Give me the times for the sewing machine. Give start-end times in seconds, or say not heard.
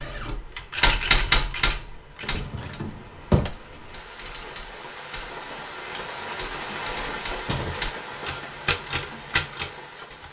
not heard.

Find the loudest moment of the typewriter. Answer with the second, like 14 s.
1 s.